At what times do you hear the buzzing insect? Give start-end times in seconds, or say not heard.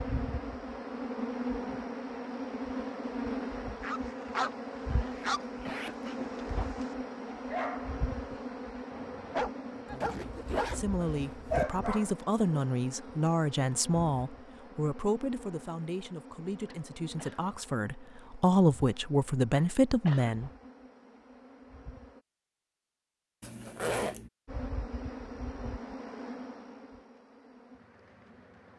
0.0-22.2, 24.4-28.7.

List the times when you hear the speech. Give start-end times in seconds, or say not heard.
9.7-20.5.